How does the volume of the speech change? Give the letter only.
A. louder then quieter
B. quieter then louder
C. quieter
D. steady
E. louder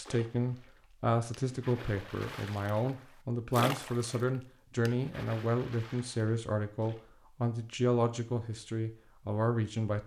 D.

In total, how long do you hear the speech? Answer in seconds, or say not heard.
10 s.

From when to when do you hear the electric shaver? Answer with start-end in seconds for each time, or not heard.
not heard.